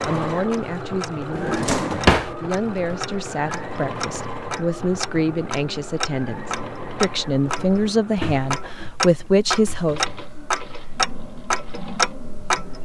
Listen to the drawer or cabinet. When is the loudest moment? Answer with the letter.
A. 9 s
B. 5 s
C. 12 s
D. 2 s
D.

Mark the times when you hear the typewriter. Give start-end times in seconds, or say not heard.
not heard.